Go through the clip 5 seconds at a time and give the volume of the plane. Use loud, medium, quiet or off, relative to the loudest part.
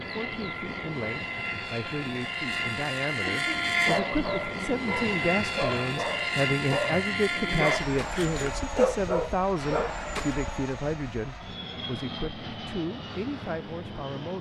loud, loud, medium.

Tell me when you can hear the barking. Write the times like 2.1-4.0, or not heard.
3.1-10.3.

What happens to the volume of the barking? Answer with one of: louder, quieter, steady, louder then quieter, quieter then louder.
louder.